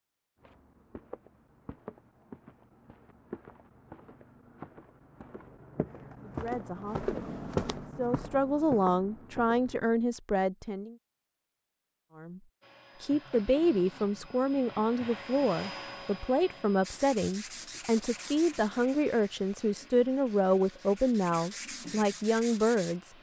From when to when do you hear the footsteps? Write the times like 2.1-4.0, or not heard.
0.4-9.8.